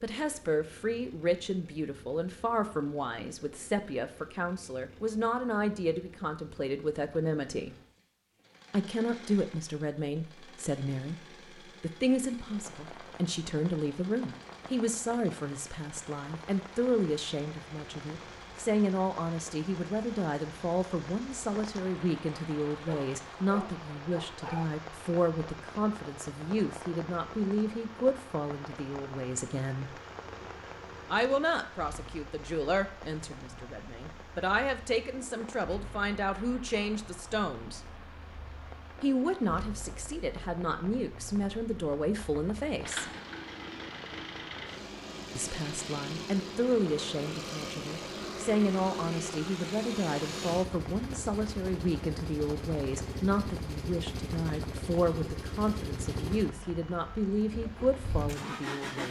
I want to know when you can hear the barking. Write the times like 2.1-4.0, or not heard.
22.9-24.6.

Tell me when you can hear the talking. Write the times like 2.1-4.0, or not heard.
0.0-7.8, 8.7-29.9, 31.1-37.8, 39.0-43.0, 45.4-59.0.